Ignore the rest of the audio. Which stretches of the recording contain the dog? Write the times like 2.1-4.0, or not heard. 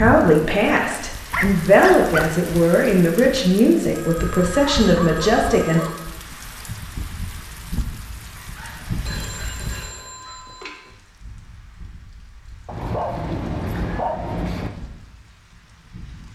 0.7-2.2, 4.5-6.0, 8.3-10.4, 12.7-14.7.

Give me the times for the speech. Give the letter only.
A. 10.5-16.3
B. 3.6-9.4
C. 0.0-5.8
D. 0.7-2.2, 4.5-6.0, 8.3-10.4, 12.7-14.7
C.